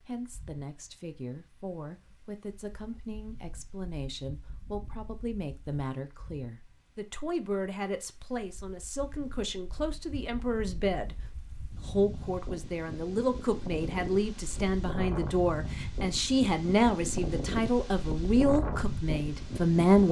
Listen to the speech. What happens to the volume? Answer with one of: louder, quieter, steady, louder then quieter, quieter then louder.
louder.